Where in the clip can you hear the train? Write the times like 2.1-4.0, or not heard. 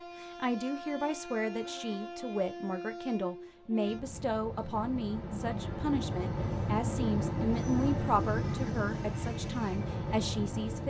0.0-10.8.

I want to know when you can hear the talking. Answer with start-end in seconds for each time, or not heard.
0.2-10.8.